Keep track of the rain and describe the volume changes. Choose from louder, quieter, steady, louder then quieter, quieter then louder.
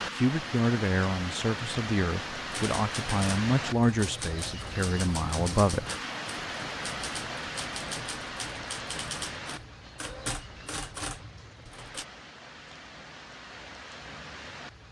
quieter.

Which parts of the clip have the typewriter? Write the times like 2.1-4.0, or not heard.
2.5-12.1.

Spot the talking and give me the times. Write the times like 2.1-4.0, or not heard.
0.0-5.8.